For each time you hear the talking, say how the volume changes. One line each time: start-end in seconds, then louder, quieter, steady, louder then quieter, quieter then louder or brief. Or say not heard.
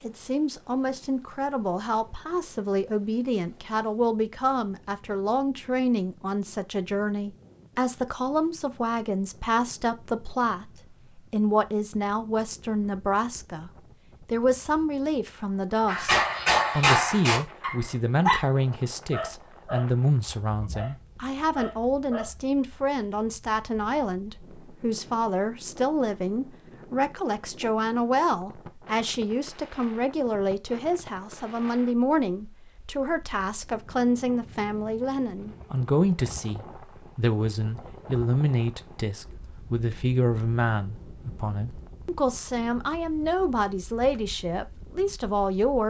0.0-45.8 steady.